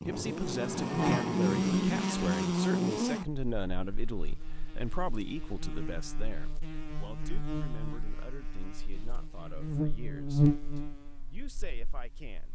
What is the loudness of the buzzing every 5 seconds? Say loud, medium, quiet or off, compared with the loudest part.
loud, medium, loud.